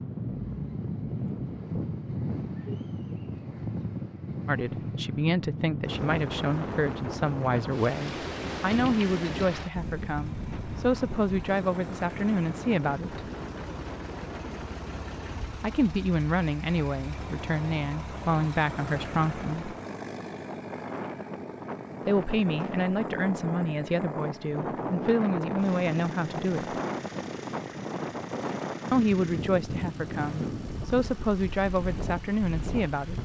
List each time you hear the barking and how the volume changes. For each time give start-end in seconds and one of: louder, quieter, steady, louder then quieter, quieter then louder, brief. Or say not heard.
not heard.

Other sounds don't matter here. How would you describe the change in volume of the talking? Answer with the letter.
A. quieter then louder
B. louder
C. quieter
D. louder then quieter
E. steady
E.